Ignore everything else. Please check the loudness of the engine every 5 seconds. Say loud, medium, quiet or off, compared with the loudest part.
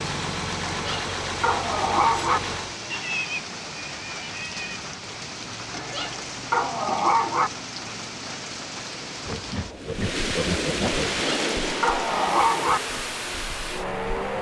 loud, off, loud.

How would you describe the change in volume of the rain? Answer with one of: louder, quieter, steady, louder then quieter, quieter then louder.
louder.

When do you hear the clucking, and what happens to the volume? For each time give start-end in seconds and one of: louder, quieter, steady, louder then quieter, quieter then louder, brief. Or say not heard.
not heard.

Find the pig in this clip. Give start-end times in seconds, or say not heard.
2.9-4.8, 9.2-11.2.